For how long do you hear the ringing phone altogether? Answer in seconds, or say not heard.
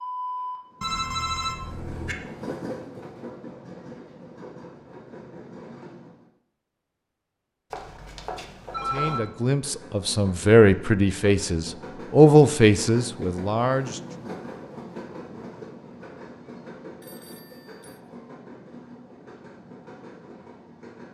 4 s.